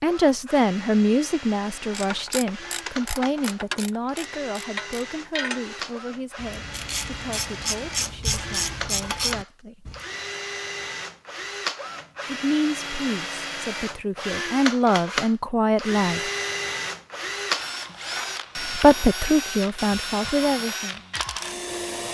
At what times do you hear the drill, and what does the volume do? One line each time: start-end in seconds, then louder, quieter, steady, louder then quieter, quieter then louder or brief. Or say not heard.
0.0-22.0 louder.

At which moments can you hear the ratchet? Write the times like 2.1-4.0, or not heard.
1.9-10.0.